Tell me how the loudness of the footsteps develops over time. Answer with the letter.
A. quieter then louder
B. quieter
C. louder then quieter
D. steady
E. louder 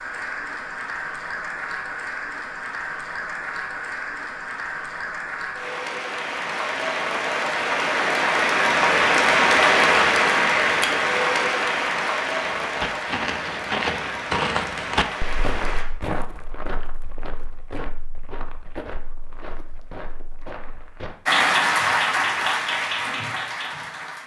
B.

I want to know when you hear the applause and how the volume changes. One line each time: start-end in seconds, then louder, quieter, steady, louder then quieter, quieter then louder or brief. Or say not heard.
0.0-15.8 louder then quieter
21.2-24.2 brief.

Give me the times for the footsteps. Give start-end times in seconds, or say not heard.
12.4-21.1.